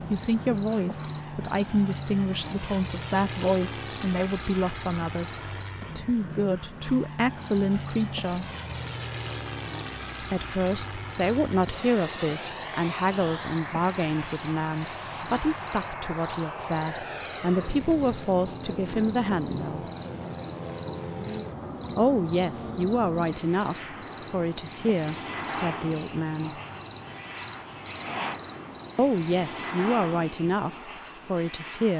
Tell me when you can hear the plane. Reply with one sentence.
You can hear the plane from 0.0 to 31.9 s.